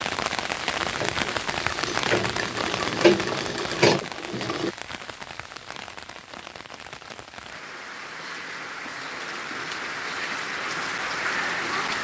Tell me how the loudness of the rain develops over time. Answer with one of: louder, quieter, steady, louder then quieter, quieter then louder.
quieter then louder.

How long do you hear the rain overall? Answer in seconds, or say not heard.
12 s.